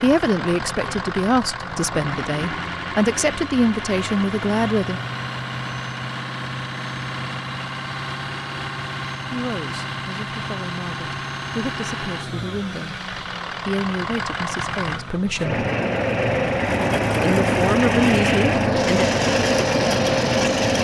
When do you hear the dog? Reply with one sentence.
The dog can't be heard in this clip.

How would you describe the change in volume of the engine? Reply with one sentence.
The volume of the engine goes up.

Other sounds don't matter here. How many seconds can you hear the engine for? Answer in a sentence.
You can hear the engine for 21 seconds altogether.